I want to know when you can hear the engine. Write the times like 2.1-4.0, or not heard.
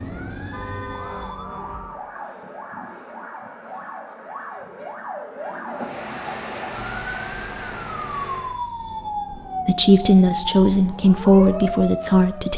5.7-8.6.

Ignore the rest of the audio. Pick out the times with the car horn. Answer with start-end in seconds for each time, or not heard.
0.5-1.4.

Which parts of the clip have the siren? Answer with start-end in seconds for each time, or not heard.
0.0-12.5.